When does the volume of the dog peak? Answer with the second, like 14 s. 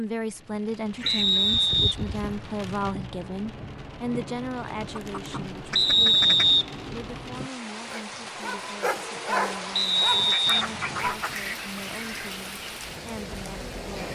9 s.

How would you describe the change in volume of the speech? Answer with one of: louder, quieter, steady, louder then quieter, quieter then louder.
quieter.